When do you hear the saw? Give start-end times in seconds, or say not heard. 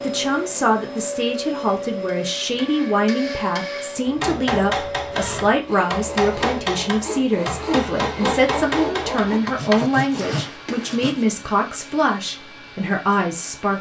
5.0-11.2.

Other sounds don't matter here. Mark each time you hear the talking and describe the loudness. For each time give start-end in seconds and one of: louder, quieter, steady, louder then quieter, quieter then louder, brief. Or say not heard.
0.0-13.7 steady.